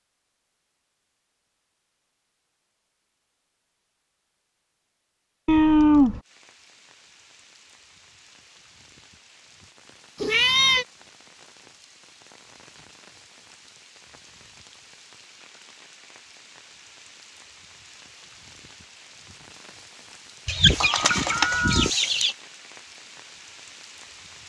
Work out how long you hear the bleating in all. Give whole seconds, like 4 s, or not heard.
not heard.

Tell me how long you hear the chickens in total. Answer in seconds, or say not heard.
2 s.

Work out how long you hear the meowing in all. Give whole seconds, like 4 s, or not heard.
3 s.